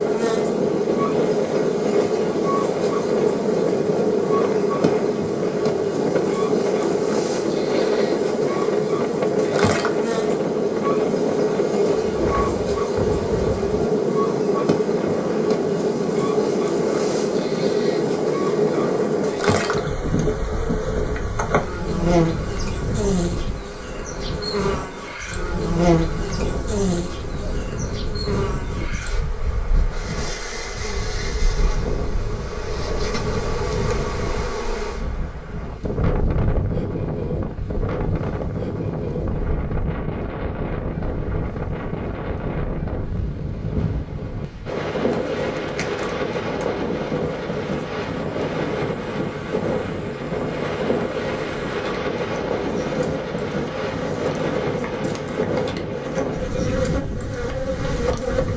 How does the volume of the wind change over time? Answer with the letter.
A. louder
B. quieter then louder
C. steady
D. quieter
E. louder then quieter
B.